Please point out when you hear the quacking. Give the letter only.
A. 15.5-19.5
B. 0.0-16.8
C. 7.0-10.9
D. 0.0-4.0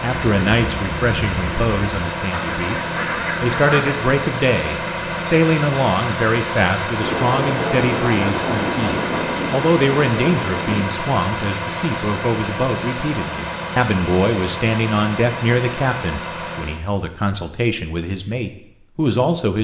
D.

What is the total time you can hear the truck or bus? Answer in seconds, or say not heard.
17 s.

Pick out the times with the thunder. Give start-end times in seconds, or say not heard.
7.0-10.9.